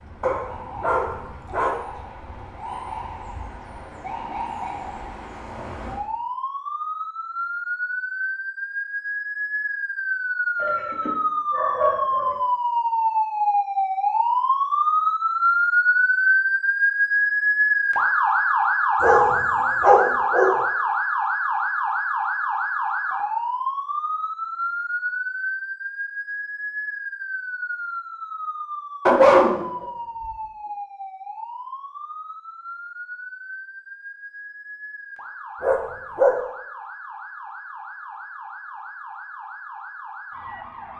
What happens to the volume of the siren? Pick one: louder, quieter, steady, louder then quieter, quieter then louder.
louder then quieter.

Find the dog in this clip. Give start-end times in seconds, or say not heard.
0.2-1.8, 10.6-12.3, 19.0-20.6, 29.1-30.3, 35.6-36.4.